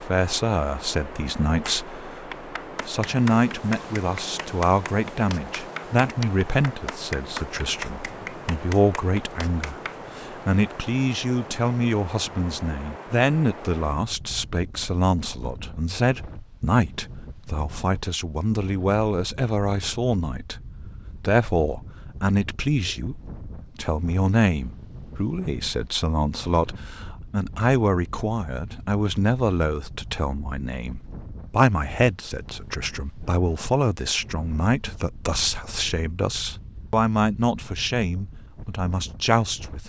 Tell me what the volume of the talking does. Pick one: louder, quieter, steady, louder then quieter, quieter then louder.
steady.